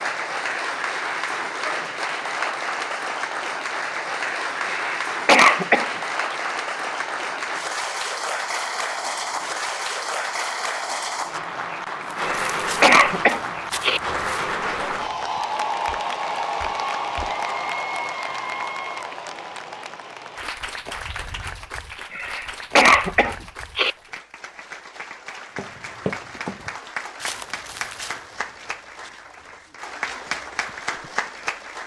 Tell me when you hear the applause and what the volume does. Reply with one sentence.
You can hear the applause from 0.0 to 31.8 s, getting quieter.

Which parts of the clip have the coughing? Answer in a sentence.
The coughing can be heard from 4.7 to 6.3 s, from 12.2 to 14.0 s and from 22.1 to 23.9 s.